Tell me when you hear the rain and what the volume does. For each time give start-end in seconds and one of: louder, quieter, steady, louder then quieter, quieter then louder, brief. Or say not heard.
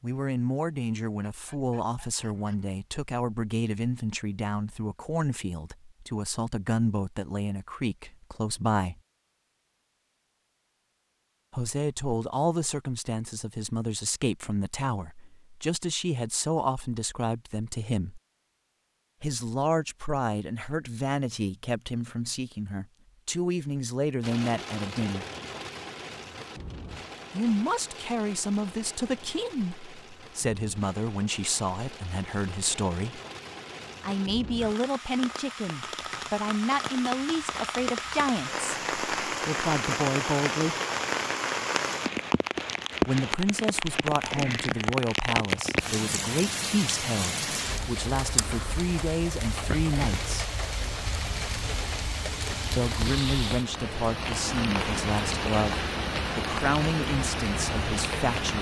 24.2-58.5 louder.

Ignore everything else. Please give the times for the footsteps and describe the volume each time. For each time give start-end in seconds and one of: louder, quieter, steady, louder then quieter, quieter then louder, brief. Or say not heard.
not heard.